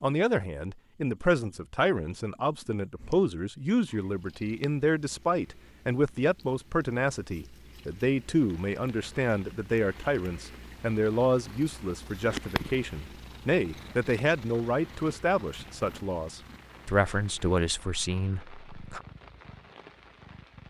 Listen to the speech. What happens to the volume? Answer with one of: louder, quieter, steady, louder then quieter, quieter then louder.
steady.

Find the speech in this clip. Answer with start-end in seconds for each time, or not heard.
0.0-19.1.